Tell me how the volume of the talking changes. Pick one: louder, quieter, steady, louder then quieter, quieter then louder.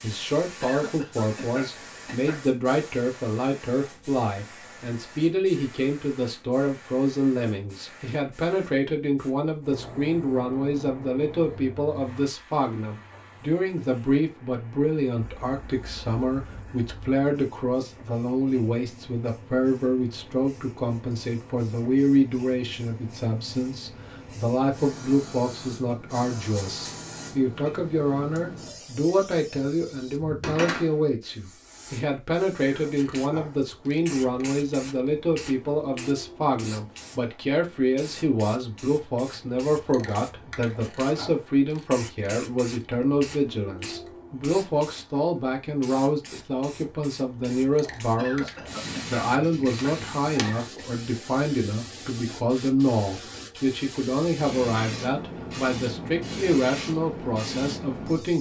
steady.